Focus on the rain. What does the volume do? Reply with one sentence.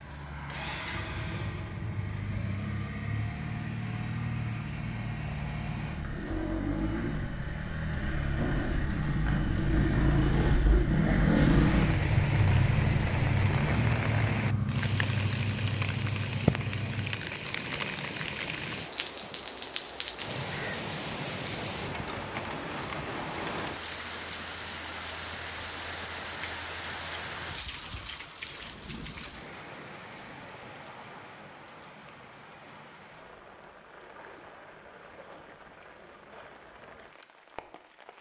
The loudness of the rain goes down.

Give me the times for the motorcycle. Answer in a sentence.
You can hear the motorcycle from 0.0 to 17.1 s.